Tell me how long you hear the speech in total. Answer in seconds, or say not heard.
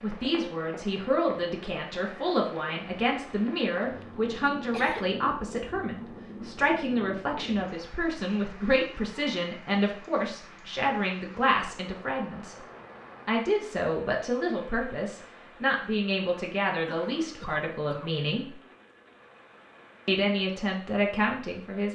20 s.